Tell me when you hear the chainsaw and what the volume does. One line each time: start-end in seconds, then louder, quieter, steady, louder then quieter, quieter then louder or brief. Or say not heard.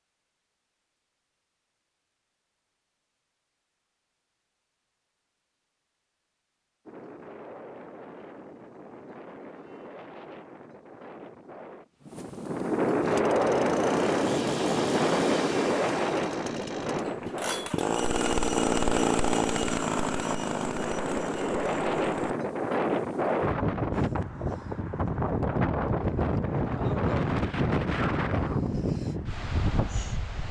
13.0-22.4 louder then quieter.